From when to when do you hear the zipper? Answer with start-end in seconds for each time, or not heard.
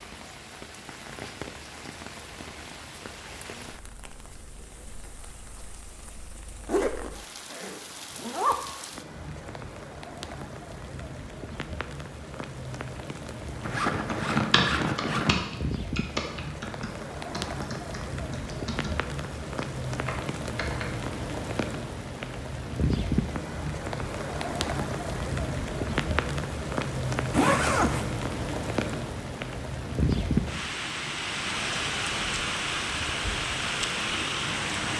6.7-8.6, 13.6-15.4, 27.3-28.1.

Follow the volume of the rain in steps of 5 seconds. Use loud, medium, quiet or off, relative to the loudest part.
quiet, quiet, medium, medium, loud, loud, loud.